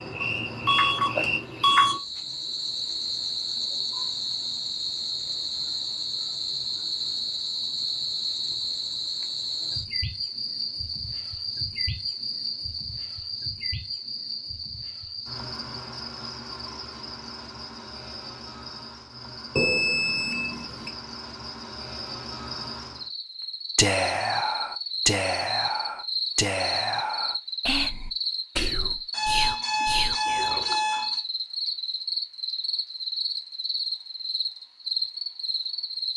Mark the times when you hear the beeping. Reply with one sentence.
You can hear the beeping from 0.2 to 1.9 s, from 19.6 to 20.9 s and from 29.1 to 31.2 s.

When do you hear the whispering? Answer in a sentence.
You can hear the whispering from 23.8 to 30.8 s.